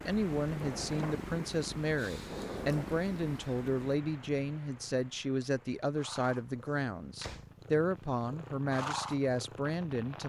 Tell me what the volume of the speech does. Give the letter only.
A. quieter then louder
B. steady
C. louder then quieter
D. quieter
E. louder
B.